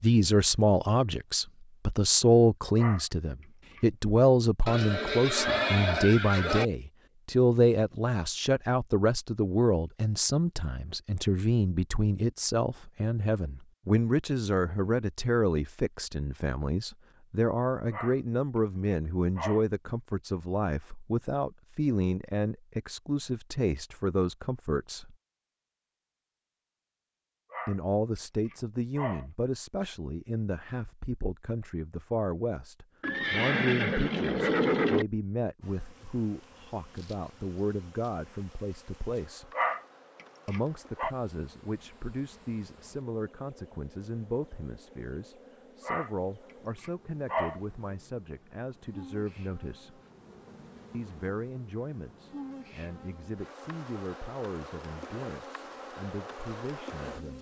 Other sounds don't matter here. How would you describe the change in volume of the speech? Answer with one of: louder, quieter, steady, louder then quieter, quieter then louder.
quieter.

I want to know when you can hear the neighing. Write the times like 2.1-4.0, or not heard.
4.7-6.7, 33.0-35.0.